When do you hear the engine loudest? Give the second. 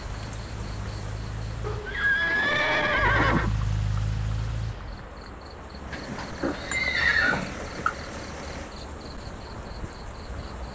4 s.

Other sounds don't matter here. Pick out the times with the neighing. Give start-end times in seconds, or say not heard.
1.6-3.5, 5.9-7.6.